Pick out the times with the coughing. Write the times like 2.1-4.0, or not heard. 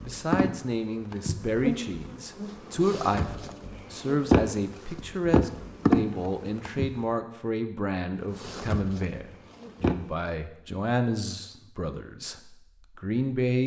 not heard.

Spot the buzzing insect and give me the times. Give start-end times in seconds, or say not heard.
0.0-7.0, 8.3-9.9.